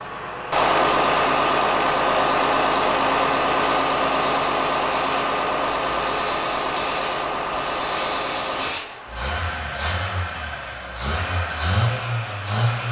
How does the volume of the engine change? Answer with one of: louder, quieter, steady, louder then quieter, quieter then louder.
quieter.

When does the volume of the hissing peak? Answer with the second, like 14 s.
8 s.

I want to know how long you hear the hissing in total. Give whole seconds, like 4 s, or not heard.
5 s.